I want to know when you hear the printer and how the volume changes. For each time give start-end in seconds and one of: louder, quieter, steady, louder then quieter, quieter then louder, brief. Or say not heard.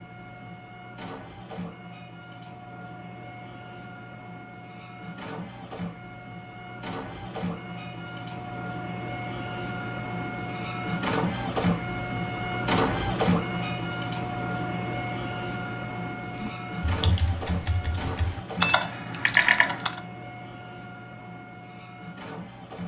0.0-22.8 louder then quieter.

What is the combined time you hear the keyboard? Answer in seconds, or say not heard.
4 s.